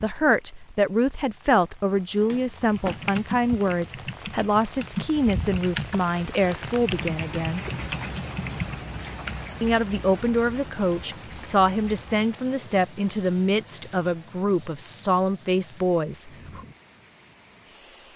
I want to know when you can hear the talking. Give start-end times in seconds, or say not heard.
0.0-7.7, 9.6-16.6.